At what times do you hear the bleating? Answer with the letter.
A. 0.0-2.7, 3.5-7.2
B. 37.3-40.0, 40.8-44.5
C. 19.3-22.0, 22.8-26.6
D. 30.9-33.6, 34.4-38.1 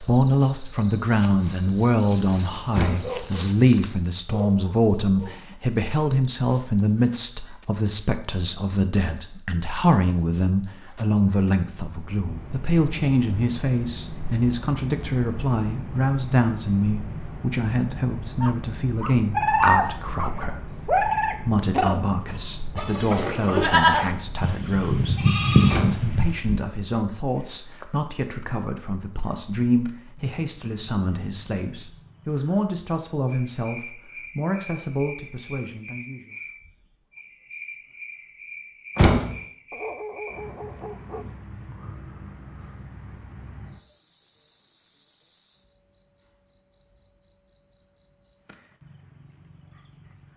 C.